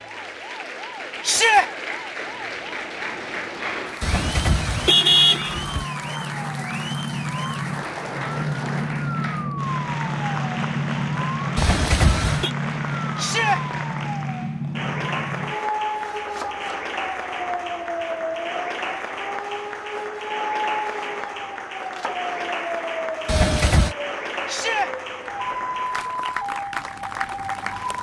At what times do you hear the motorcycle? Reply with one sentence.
You can't hear the motorcycle here.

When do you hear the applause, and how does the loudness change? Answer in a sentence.
You can hear the applause from 0.0 to 27.9 s, at a steady volume.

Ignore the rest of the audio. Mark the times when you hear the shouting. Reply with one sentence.
You can hear the shouting from 1.2 to 1.6 s, from 13.2 to 13.6 s and from 24.4 to 24.9 s.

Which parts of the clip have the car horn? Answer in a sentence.
You can hear the car horn from 4.0 to 5.8 s, from 11.6 to 12.5 s and from 23.2 to 23.9 s.